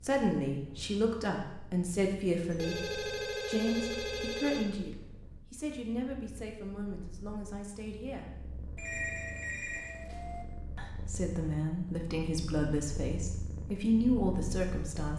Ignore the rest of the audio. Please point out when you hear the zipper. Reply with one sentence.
The zipper can't be heard in this clip.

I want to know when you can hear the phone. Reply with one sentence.
You can hear the phone from 2.5 to 5.0 s and from 8.8 to 10.4 s.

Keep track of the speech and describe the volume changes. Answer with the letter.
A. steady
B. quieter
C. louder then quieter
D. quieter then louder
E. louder
D.